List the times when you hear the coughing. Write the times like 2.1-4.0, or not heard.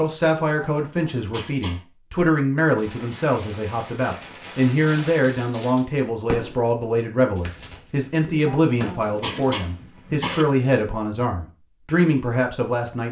0.4-1.9, 8.2-10.4.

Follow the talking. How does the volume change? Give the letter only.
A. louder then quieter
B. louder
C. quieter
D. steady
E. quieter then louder
D.